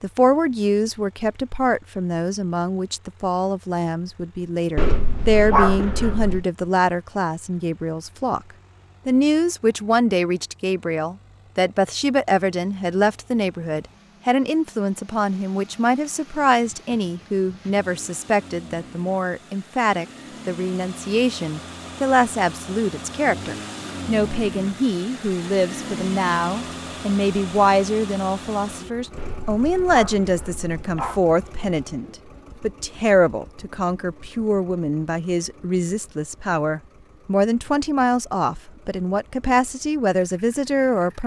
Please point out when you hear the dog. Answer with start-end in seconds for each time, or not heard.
4.8-6.5, 29.1-31.2.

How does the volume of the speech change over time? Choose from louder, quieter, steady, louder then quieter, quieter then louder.
steady.